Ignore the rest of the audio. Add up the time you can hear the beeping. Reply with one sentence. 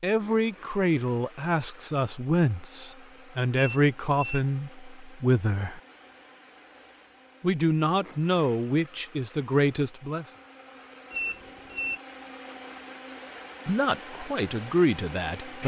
You can hear the beeping for 2 seconds altogether.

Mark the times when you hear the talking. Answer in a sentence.
You can hear the talking from 0.0 to 5.8 s, from 7.4 to 10.2 s and from 13.7 to 15.6 s.